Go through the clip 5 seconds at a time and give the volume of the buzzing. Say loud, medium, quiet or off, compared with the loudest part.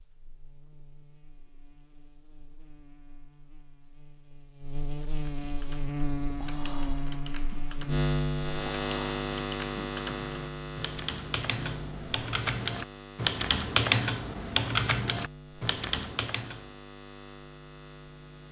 quiet, loud, medium, quiet.